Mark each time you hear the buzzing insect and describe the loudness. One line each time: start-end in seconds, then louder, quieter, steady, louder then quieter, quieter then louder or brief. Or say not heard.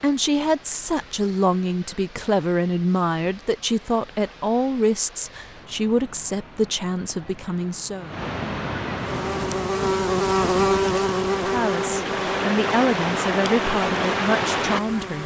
8.9-15.2 quieter.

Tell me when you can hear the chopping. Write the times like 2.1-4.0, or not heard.
not heard.